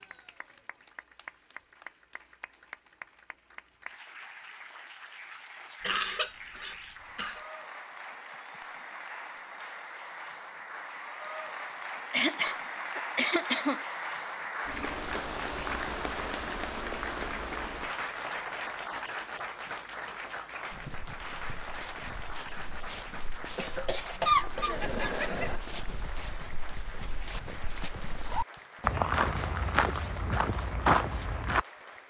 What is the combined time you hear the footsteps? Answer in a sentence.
You can hear the footsteps for 11 seconds altogether.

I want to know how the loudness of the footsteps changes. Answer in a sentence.
The loudness of the footsteps goes up.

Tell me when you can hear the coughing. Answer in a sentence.
The coughing can be heard from 5.8 to 7.4 s, from 11.7 to 13.8 s and from 23.6 to 25.6 s.